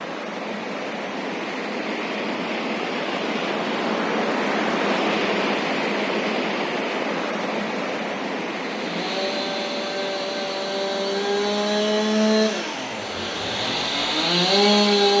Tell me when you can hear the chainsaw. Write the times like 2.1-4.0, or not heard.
8.6-15.1.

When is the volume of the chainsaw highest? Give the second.
15 s.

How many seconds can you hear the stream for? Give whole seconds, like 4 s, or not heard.
15 s.